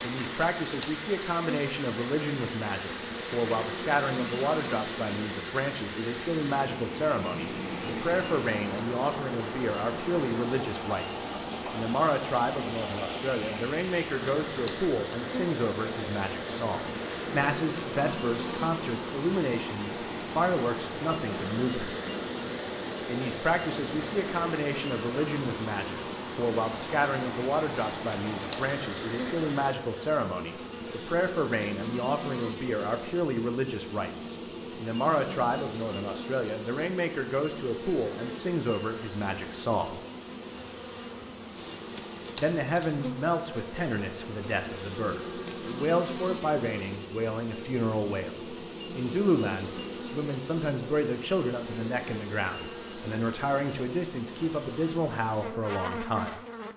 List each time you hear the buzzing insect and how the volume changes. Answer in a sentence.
You can hear the buzzing insect from 0.0 to 56.7 s, at a steady volume.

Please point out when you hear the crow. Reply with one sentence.
You can't hear the crow here.